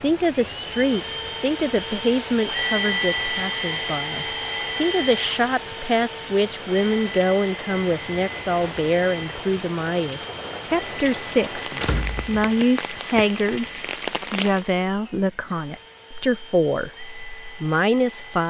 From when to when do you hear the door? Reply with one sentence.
The door can be heard from 11.7 to 12.6 s.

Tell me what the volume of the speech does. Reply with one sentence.
The volume of the speech stays about the same.